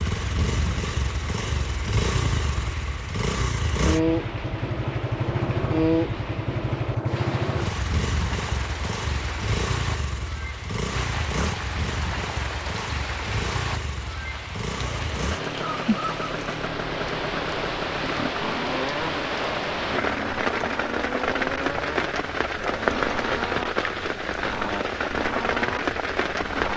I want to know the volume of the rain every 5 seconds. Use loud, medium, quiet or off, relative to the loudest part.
quiet, medium, medium, loud, loud, loud.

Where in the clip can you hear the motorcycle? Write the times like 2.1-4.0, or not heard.
0.0-26.7.